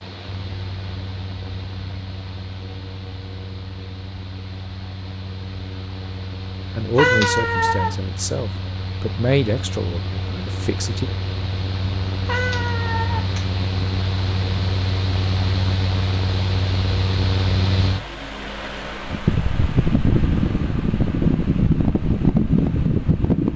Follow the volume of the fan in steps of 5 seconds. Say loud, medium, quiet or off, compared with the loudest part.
quiet, quiet, medium, medium, loud.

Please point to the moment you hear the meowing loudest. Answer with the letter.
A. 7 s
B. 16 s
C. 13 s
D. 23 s
A.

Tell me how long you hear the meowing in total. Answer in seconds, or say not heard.
2 s.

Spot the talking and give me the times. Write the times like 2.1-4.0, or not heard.
6.8-11.1.